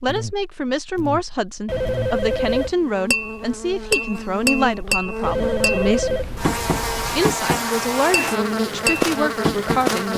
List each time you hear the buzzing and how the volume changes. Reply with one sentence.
You can hear the buzzing from 0.0 to 10.1 s, getting louder.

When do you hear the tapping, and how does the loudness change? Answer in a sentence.
You can hear the tapping from 3.1 to 10.1 s, at a steady volume.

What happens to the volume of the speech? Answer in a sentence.
The volume of the speech stays about the same.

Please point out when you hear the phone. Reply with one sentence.
You can hear the phone from 1.6 to 2.8 s and from 5.2 to 7.2 s.